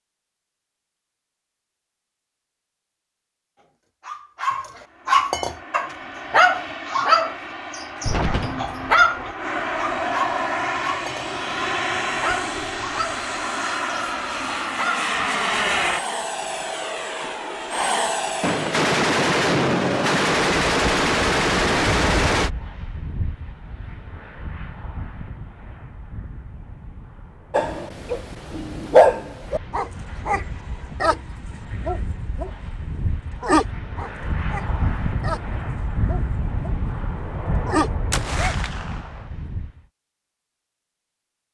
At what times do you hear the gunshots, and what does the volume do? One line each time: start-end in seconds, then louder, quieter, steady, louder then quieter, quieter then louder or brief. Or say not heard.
8.1-9.3 brief
18.4-22.5 steady
38.1-39.2 brief.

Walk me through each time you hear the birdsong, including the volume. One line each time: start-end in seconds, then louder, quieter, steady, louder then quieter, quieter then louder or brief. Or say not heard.
not heard.